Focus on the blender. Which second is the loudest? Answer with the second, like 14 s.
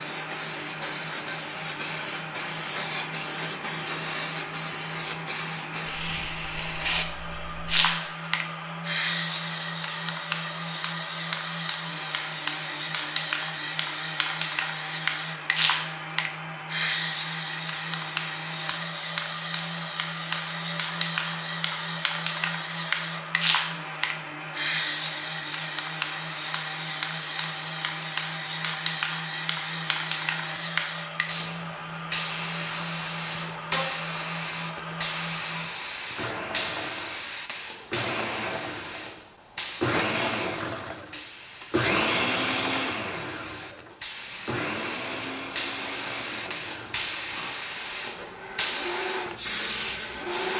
42 s.